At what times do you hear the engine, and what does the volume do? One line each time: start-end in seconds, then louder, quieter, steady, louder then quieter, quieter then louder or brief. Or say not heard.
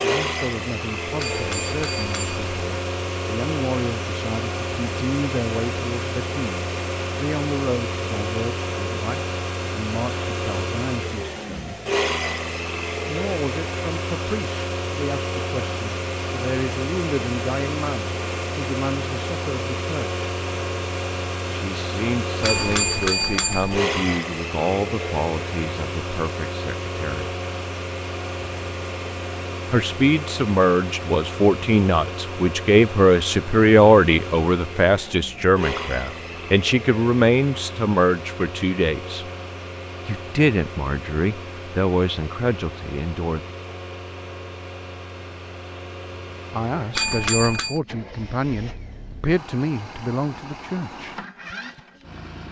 0.0-52.4 quieter.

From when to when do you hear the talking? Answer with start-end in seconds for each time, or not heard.
0.0-11.8, 13.1-20.2, 21.5-27.3, 29.7-39.2, 40.0-43.5, 46.5-51.1.